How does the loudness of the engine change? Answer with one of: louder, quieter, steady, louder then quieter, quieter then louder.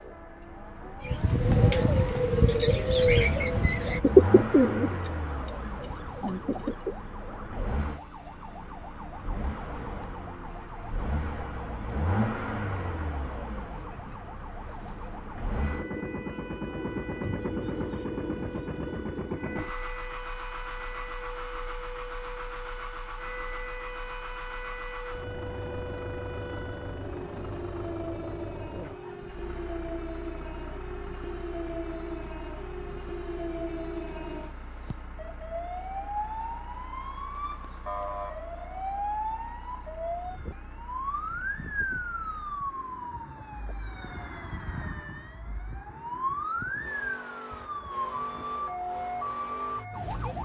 quieter.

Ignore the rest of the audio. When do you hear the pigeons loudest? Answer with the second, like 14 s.
4 s.